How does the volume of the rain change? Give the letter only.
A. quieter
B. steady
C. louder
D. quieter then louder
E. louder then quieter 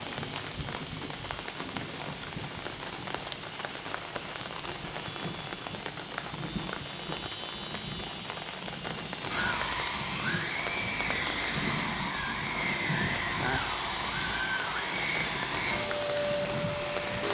B.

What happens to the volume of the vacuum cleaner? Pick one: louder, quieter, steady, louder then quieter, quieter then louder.
steady.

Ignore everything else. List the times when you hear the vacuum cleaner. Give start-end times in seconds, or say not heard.
9.2-17.2.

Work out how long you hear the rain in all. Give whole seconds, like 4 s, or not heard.
17 s.